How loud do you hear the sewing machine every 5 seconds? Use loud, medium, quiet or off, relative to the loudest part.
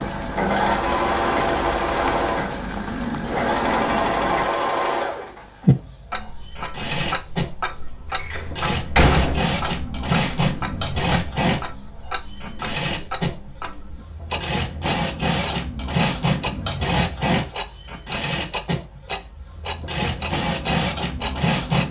loud, medium, loud, loud, loud.